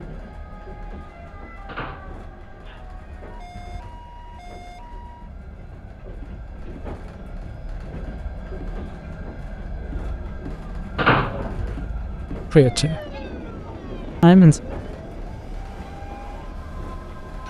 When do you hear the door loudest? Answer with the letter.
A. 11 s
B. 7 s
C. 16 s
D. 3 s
A.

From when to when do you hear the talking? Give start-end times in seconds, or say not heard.
12.5-13.0, 14.2-14.6.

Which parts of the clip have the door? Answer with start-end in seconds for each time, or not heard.
1.6-2.9, 10.9-11.8.